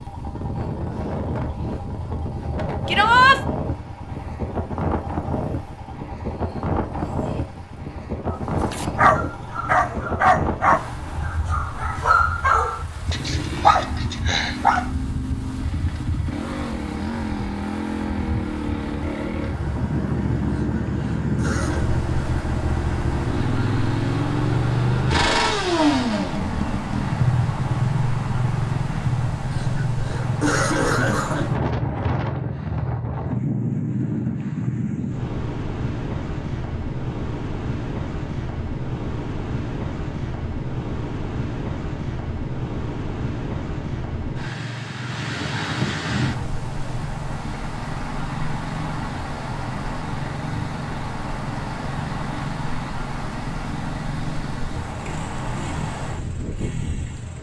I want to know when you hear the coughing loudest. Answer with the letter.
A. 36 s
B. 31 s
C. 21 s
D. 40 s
B.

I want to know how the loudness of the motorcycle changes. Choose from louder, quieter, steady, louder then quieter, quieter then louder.
louder then quieter.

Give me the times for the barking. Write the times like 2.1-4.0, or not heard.
8.2-14.9.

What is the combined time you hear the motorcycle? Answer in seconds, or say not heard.
57 s.